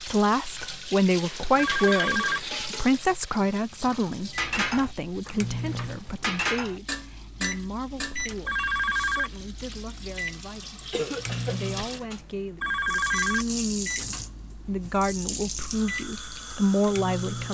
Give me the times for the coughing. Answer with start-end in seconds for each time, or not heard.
10.9-11.6.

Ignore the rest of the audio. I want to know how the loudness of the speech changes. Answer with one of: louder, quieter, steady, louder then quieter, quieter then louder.
quieter then louder.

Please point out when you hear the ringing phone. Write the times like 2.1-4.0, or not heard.
1.6-2.4, 8.4-9.3, 12.6-13.4.